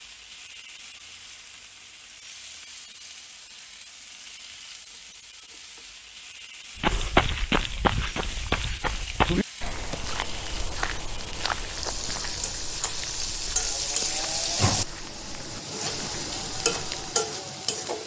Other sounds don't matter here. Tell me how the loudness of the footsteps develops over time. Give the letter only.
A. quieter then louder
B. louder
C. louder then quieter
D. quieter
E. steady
D.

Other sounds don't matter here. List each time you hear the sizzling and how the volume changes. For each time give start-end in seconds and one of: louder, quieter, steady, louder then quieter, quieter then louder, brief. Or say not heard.
0.0-18.0 louder.